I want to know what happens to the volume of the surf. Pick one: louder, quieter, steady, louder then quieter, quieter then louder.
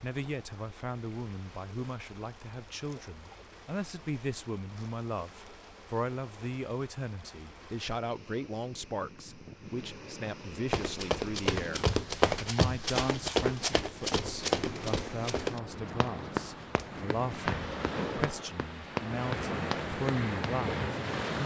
louder.